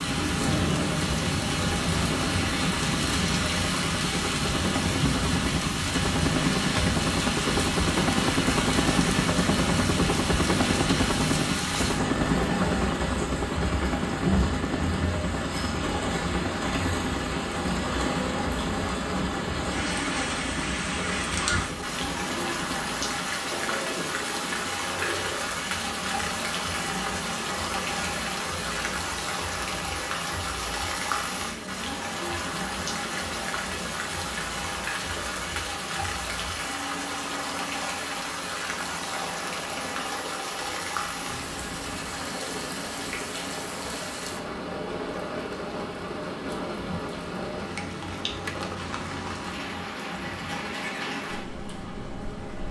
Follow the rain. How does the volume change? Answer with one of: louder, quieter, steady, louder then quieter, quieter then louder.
quieter.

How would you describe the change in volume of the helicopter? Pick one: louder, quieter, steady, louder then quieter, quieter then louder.
quieter.